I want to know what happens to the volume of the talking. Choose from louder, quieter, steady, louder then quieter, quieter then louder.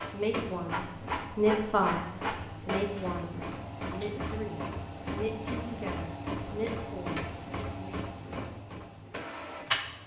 quieter.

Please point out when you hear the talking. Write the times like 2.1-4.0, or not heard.
0.1-8.0.